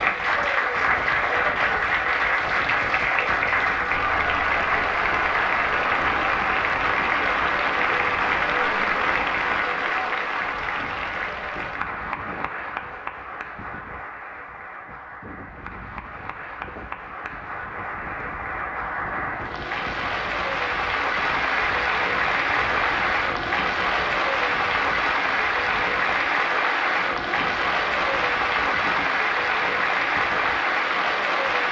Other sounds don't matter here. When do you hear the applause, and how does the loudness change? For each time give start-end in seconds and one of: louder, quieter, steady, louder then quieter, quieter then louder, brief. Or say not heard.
0.0-31.6 quieter then louder.